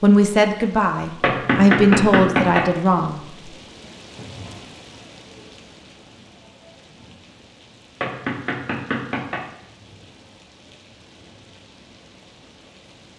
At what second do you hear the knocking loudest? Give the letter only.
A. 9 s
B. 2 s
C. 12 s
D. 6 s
B.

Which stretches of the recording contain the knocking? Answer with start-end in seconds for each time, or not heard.
1.2-2.7, 8.0-9.5.